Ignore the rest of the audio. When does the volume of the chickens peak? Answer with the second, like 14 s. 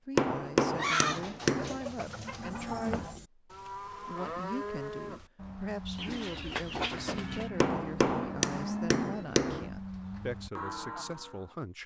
1 s.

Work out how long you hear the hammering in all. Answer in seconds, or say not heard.
4 s.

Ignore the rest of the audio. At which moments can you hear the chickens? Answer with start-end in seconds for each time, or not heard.
0.8-3.1, 6.0-7.5.